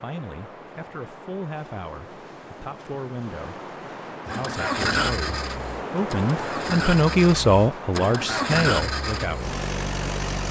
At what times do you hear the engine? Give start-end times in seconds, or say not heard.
4.2-10.4.